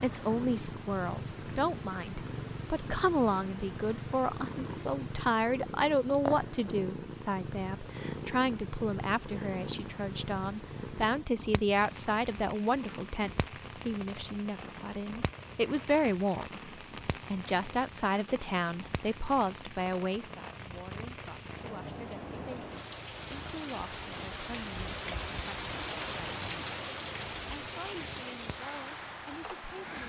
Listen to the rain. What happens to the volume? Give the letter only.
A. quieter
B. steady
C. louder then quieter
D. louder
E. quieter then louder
D.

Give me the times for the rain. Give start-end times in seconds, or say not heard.
11.8-30.0.